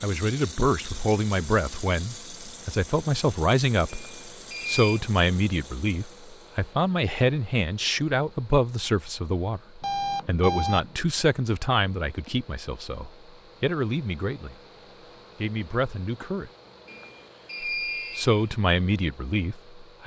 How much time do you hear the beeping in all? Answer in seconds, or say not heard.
4 s.